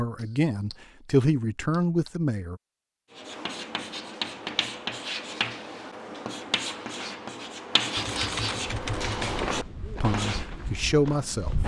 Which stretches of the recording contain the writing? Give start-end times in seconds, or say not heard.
3.1-10.4.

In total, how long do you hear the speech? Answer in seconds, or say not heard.
4 s.